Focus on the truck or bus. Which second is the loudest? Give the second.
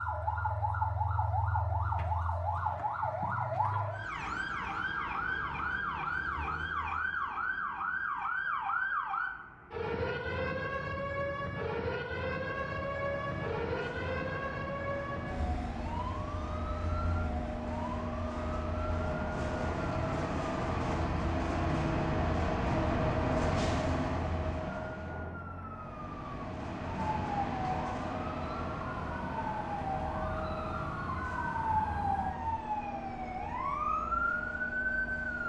23 s.